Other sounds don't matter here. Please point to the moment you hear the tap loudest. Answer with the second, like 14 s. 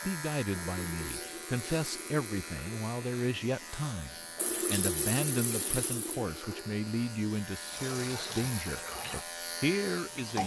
5 s.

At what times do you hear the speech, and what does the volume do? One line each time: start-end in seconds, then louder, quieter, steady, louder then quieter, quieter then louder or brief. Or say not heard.
0.0-10.4 steady.